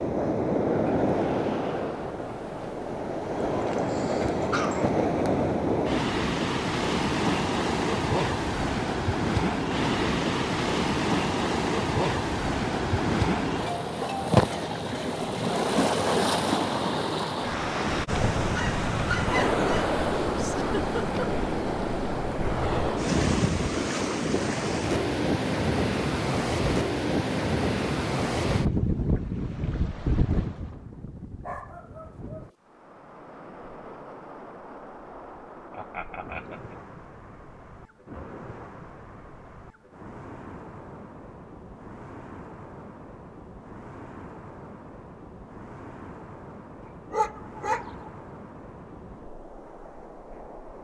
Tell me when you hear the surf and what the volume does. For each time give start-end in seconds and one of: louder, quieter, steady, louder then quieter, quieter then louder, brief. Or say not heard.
0.0-50.7 quieter.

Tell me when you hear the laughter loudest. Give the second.
21 s.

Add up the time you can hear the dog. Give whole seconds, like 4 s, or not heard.
5 s.